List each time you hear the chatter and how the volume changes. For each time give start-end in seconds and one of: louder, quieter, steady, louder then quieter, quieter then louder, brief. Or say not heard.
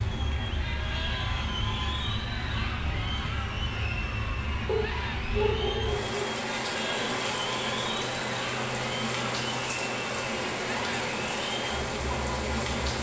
0.0-12.8 steady.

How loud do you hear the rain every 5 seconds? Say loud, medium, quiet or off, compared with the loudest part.
medium, loud, loud.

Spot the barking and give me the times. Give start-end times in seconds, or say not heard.
4.7-6.2.